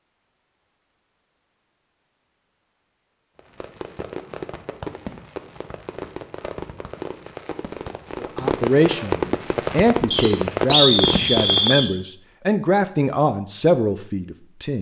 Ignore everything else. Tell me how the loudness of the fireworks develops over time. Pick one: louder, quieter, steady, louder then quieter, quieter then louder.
louder.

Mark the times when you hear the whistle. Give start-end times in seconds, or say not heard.
10.1-11.9.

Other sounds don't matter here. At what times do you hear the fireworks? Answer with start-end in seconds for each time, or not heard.
3.4-11.8.